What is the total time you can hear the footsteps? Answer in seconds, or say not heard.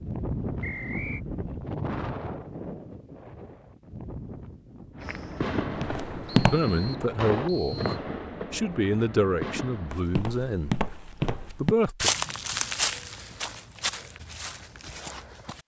7 s.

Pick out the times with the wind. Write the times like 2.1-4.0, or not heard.
0.0-8.1.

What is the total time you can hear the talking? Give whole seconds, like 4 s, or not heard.
5 s.